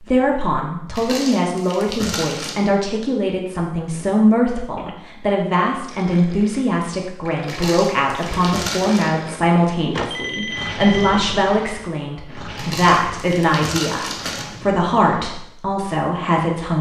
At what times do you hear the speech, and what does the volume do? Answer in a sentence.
The speech can be heard from 0.0 to 16.7 s, at a steady volume.